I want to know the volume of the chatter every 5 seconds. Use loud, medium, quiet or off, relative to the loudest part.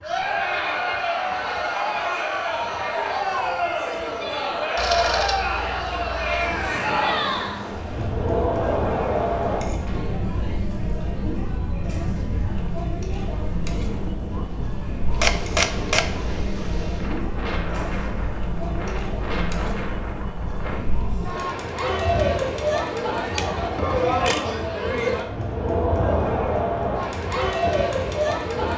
loud, loud, medium, medium, loud, loud.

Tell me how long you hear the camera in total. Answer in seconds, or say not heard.
4 s.